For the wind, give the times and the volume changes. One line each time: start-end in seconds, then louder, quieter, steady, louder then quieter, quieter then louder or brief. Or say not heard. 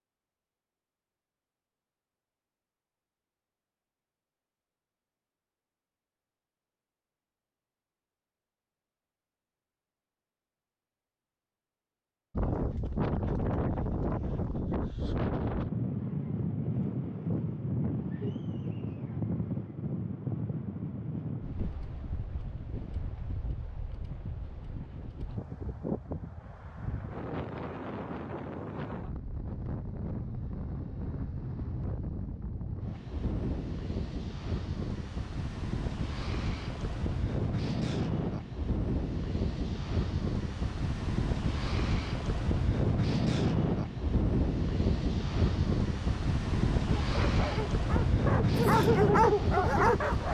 12.3-50.2 quieter then louder.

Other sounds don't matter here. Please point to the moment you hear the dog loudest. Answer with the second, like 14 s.
49 s.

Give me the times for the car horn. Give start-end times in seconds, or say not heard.
not heard.